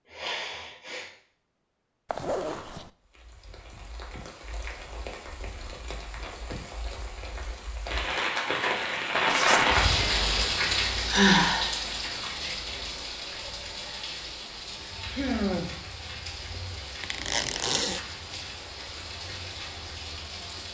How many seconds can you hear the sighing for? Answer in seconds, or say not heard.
2 s.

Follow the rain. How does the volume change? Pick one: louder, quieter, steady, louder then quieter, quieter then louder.
louder then quieter.